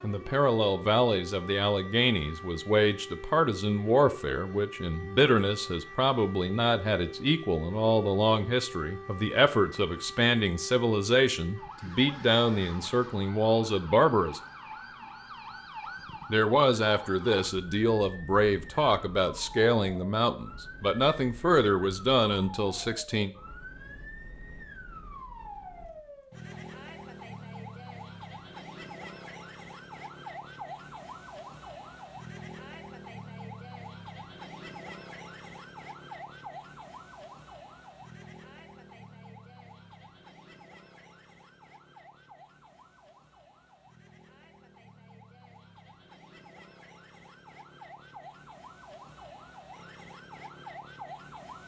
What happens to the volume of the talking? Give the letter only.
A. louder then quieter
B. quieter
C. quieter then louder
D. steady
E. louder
D.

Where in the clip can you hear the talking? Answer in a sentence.
You can hear the talking from 0.0 to 14.4 s and from 16.3 to 23.3 s.